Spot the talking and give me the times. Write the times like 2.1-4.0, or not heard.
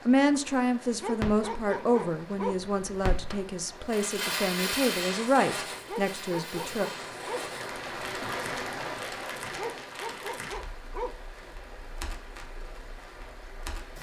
0.1-6.9.